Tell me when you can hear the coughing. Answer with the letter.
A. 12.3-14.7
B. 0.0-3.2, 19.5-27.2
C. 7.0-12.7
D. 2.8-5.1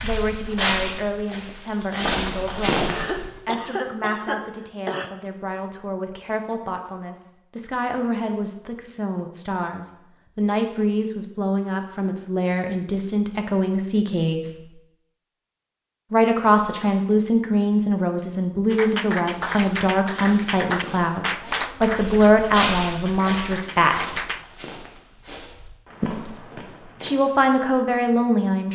D.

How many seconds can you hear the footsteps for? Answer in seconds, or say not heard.
11 s.